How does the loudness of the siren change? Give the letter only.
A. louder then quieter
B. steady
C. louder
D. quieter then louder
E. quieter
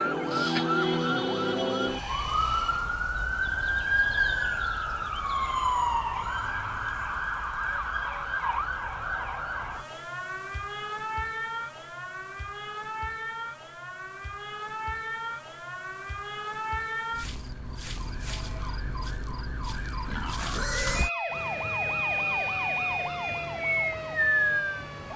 D.